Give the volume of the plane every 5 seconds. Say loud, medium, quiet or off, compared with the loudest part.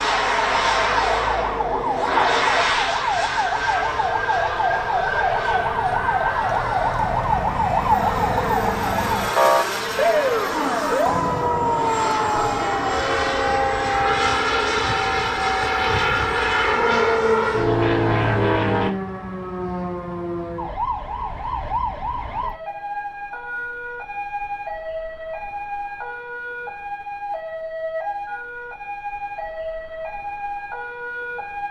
loud, medium, loud, loud, off, off, off.